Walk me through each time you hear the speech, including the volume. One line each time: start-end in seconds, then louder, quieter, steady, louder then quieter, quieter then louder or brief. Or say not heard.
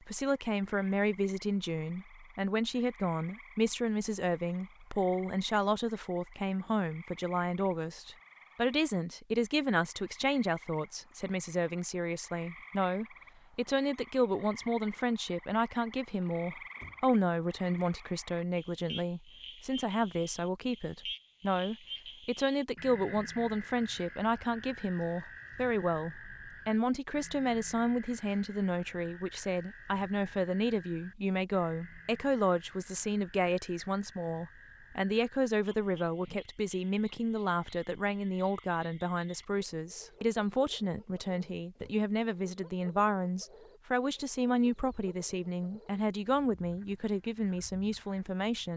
0.0-48.7 steady.